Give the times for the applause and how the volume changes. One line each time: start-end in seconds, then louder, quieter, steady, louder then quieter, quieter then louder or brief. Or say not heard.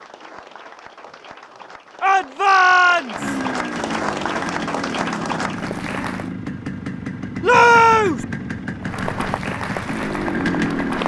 0.0-6.3 louder
8.8-11.0 brief.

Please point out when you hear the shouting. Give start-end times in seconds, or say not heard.
2.0-3.4, 7.4-8.2.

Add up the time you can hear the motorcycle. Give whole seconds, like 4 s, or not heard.
8 s.